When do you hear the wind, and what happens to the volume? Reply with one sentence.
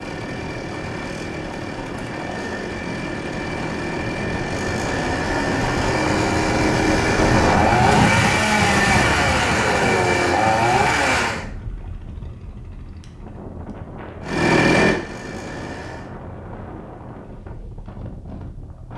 The wind can be heard from 0.0 to 18.9 s, getting louder then quieter.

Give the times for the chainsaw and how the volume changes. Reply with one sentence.
The chainsaw can be heard from 0.0 to 11.4 s, getting louder; and briefly from 14.2 to 16.1 s.